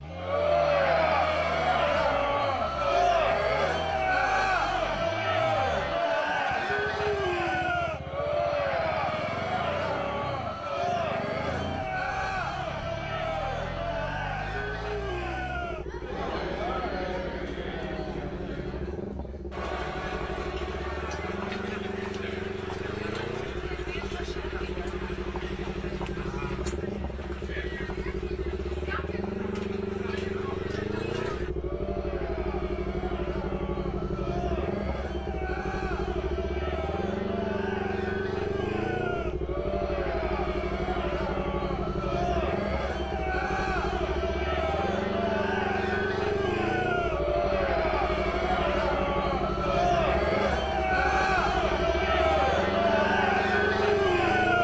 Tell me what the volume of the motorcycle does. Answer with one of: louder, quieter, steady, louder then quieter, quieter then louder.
louder.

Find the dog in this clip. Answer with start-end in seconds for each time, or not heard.
not heard.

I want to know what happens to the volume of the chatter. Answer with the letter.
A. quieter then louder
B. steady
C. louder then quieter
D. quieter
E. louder
A.